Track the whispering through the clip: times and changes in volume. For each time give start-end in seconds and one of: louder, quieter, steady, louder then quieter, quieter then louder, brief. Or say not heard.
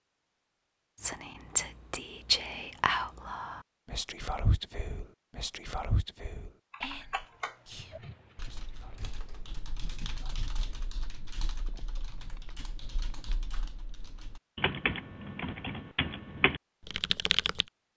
0.9-11.0 quieter.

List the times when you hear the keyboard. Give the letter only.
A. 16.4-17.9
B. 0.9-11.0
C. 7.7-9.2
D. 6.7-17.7
D.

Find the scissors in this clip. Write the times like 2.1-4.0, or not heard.
7.7-9.2.